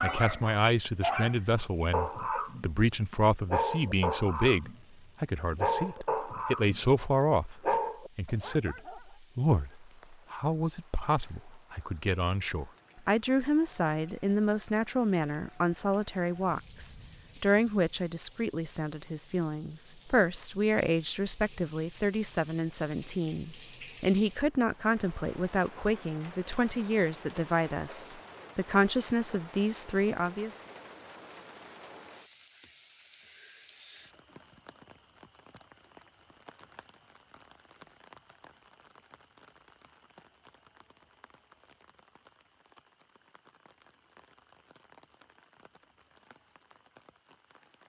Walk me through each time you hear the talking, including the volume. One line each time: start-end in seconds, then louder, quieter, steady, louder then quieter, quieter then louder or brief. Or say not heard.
0.0-30.6 steady.